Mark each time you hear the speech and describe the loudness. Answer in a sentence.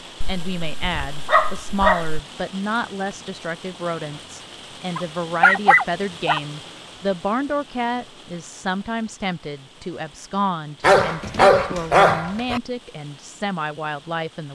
You can hear the speech from 0.2 to 14.5 s, at a steady volume.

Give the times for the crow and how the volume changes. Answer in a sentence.
The crow can't be heard in this clip.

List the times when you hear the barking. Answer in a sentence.
The barking can be heard from 0.2 to 2.2 s, from 5.0 to 6.4 s and from 10.8 to 12.6 s.